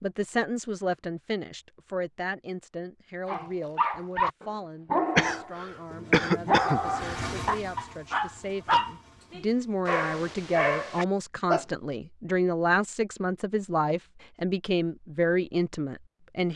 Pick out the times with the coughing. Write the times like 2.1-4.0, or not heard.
5.2-7.3.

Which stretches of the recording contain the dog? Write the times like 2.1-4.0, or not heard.
3.2-11.7.